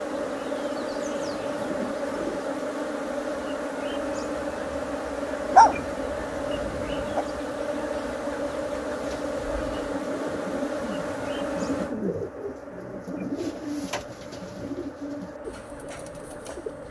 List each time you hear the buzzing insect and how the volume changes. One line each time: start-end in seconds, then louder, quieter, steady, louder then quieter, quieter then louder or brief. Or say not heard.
0.0-16.8 quieter.